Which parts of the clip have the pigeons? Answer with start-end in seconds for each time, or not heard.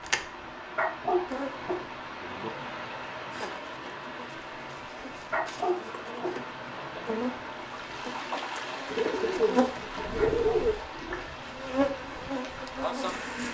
8.9-10.8.